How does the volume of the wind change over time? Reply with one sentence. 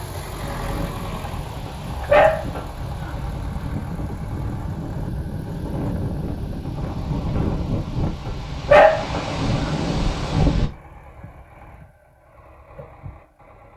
The loudness of the wind goes up.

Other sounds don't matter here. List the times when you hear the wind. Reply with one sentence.
The wind can be heard from 0.0 to 10.7 s.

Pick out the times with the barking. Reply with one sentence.
The barking can be heard from 1.6 to 3.1 s and from 8.2 to 9.7 s.